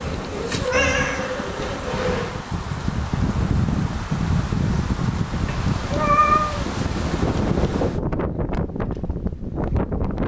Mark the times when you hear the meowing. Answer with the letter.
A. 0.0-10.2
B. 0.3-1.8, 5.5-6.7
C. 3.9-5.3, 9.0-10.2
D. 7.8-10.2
B.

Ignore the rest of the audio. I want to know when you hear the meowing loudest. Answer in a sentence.
The loudest moment of the meowing is at 6 seconds.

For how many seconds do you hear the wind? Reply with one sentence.
You can hear the wind for 10 seconds altogether.